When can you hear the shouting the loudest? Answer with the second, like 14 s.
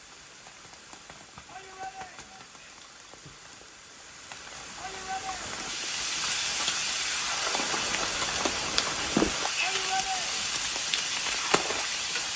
10 s.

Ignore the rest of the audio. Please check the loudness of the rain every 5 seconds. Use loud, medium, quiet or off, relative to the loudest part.
quiet, loud, loud.